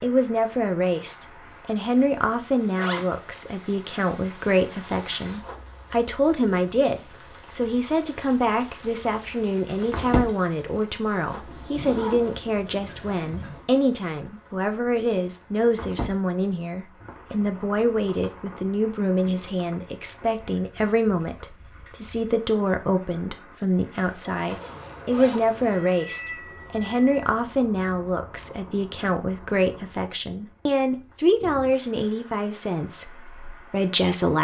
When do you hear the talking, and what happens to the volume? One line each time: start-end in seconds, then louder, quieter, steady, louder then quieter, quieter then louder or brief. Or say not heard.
0.0-34.3 steady.